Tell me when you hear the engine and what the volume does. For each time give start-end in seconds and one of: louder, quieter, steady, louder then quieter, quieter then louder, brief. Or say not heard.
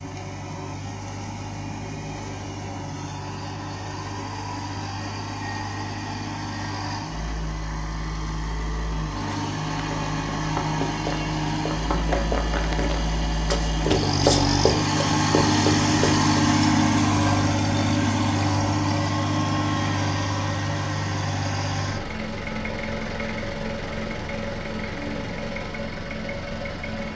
0.0-27.1 louder then quieter.